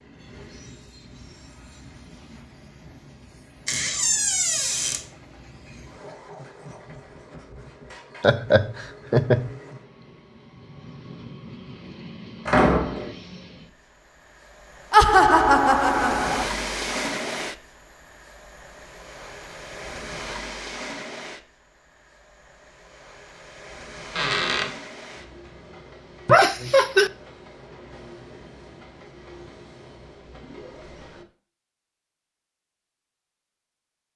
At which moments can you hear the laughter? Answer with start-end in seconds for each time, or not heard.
8.2-9.6, 14.9-16.4, 26.2-27.1.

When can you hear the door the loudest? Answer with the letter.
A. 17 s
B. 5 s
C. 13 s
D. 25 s
C.